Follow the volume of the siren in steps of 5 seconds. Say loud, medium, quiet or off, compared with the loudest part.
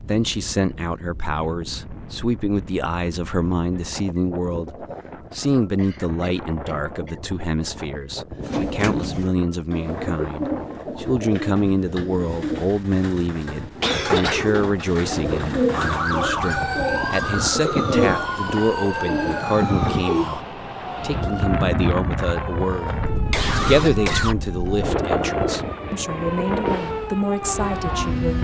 off, off, off, loud, medium, loud.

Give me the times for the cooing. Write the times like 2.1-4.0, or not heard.
8.4-20.2.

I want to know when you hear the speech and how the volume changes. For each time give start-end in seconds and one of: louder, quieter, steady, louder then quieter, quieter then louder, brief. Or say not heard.
0.0-28.3 steady.